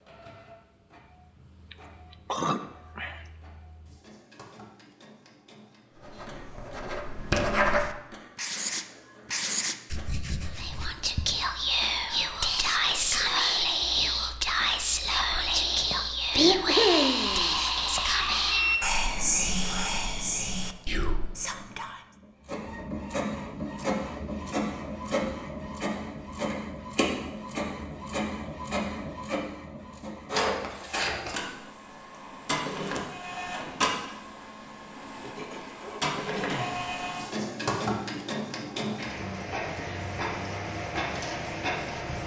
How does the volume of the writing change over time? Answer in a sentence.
The volume of the writing goes up, then down.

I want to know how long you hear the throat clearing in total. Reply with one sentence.
You can hear the throat clearing for 5 seconds altogether.